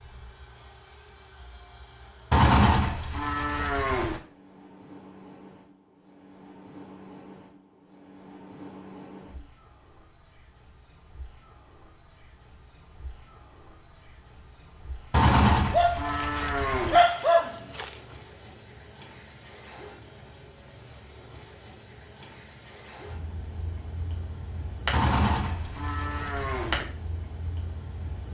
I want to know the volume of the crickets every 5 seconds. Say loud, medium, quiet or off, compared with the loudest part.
quiet, medium, medium, loud, loud, loud.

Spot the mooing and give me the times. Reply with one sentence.
The mooing can be heard from 2.3 to 4.2 s, from 15.1 to 17.0 s and from 24.9 to 26.8 s.